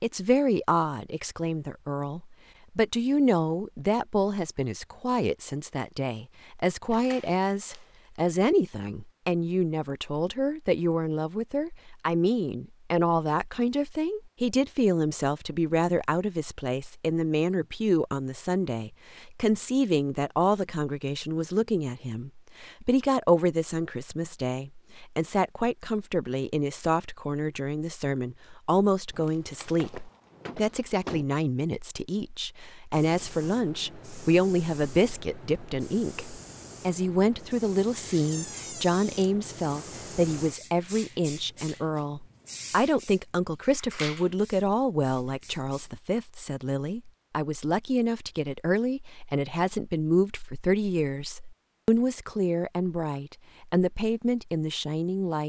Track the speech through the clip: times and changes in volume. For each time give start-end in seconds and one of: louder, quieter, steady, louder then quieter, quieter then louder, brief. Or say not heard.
0.0-55.4 steady.